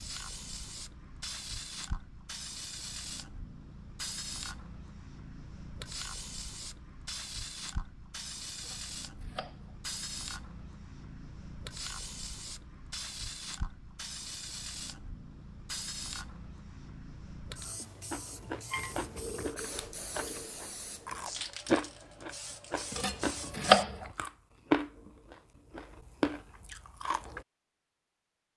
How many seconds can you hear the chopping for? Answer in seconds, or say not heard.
2 s.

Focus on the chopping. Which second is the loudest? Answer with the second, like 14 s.
24 s.